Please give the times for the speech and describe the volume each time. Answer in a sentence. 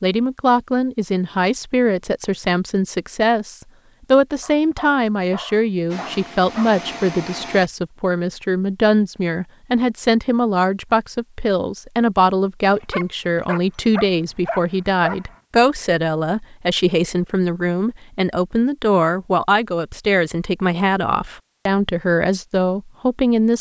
You can hear the speech from 0.0 to 23.5 s, at a steady volume.